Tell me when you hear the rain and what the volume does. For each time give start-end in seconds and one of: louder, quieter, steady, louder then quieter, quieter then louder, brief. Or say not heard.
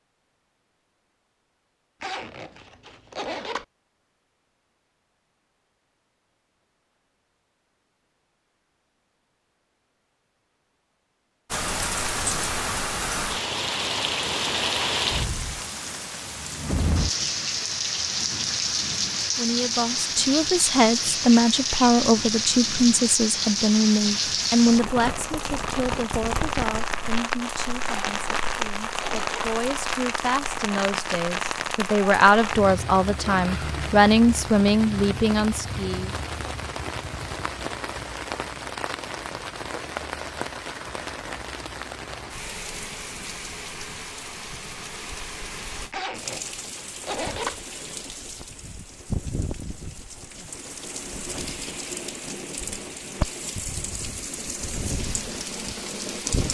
11.5-56.4 quieter.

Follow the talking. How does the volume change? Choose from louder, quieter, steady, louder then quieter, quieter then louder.
quieter then louder.